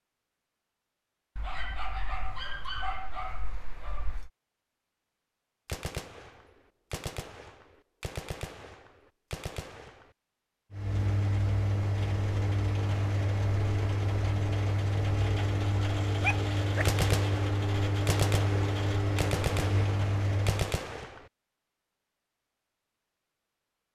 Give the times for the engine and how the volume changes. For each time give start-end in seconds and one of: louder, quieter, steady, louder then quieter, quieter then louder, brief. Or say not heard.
10.7-20.8 steady.